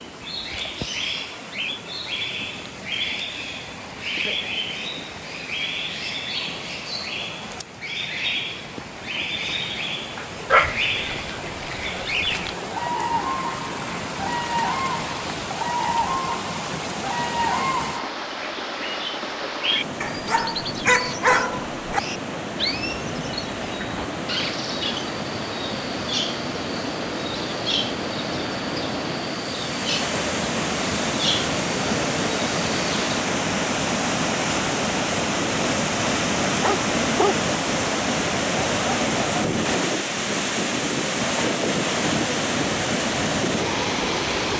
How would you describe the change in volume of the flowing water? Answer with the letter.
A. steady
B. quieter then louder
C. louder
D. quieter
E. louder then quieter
C.